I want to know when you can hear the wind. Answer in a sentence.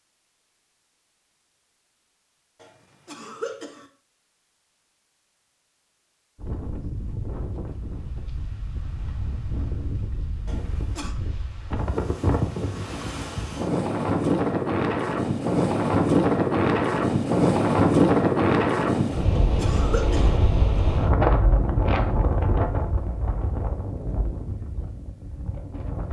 You can hear the wind from 6.3 to 26.0 s.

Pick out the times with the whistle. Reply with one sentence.
The whistle can't be heard in this clip.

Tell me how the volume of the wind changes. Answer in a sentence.
The loudness of the wind goes up, then down.